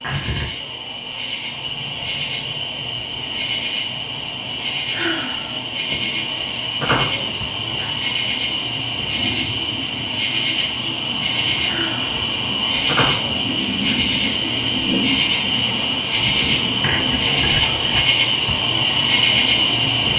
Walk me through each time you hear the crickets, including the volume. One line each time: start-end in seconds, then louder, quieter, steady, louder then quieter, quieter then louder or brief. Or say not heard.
0.0-20.1 louder.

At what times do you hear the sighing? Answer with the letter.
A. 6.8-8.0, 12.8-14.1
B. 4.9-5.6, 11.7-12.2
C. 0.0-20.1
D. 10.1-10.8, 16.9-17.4
B.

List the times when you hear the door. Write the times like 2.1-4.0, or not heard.
6.8-8.0, 12.8-14.1.